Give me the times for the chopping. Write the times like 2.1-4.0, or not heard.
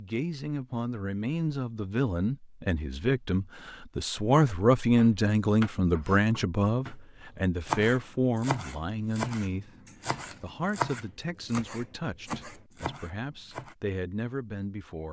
5.0-13.8.